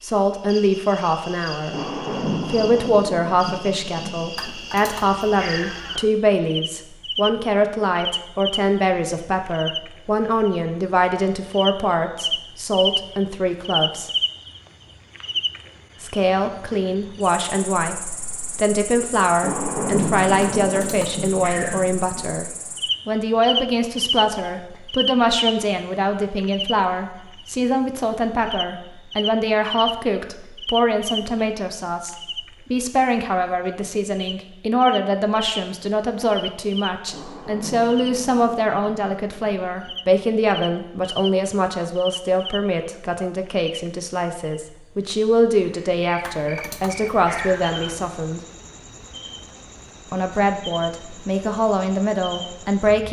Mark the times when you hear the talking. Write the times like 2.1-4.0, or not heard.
0.0-1.8, 2.5-14.1, 16.0-22.4, 23.1-48.4, 50.1-53.0.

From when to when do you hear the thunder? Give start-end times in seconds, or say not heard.
1.7-4.5, 19.4-22.2, 37.1-40.0.